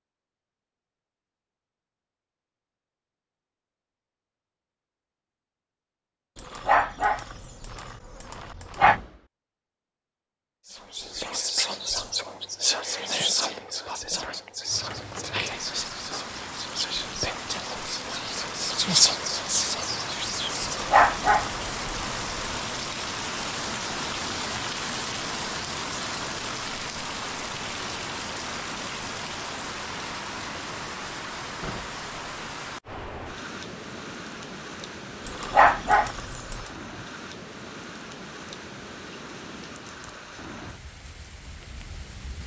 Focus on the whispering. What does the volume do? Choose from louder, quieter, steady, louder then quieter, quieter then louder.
quieter then louder.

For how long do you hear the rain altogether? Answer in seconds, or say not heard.
28 s.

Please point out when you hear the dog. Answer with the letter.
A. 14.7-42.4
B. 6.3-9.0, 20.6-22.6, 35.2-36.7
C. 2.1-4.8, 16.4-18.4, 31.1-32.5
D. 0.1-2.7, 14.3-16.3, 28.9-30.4
B.